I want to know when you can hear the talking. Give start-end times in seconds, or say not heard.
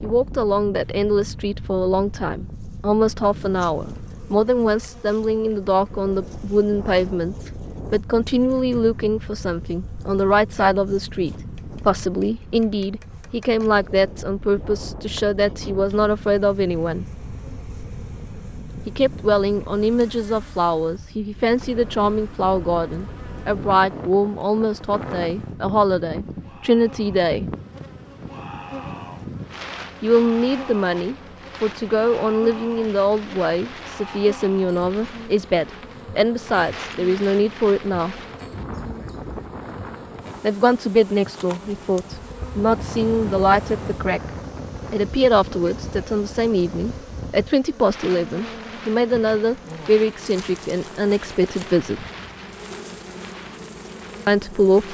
0.0-17.1, 18.9-27.4, 30.0-38.1, 40.4-44.3, 44.9-52.0, 54.2-54.8.